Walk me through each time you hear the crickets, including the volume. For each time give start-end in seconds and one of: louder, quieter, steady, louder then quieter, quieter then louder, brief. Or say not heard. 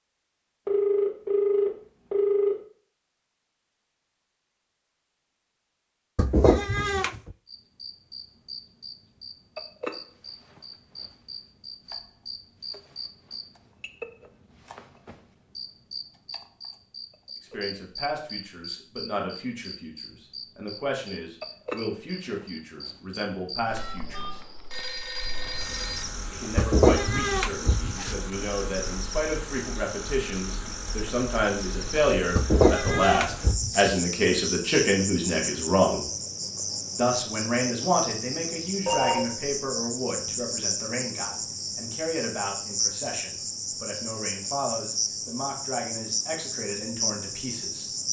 7.5-48.0 louder.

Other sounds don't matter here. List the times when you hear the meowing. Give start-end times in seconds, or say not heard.
6.2-7.3, 26.6-28.2, 32.4-34.0.